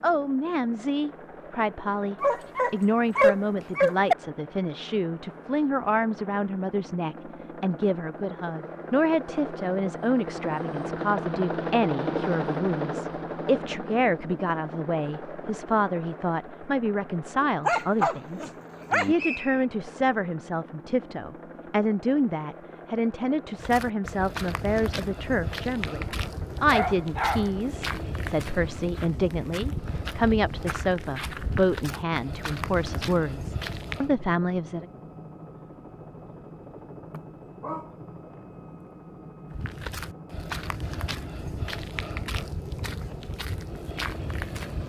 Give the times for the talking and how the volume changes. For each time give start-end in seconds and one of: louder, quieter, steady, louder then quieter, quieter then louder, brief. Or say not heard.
0.0-34.9 steady.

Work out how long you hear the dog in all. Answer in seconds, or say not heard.
5 s.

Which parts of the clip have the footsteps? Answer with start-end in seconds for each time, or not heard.
23.6-34.1, 39.5-44.8.